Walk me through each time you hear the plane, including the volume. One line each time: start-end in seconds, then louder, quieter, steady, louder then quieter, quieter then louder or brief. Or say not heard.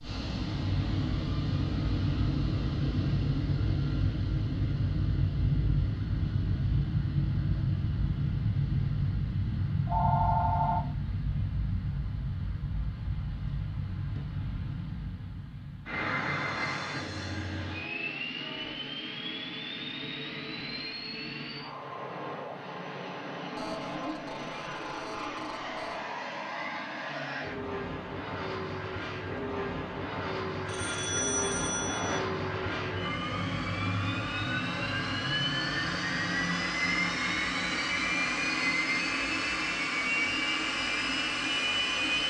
0.0-42.2 quieter then louder.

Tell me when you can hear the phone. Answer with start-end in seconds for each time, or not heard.
9.8-10.8, 23.6-26.0, 30.6-32.2.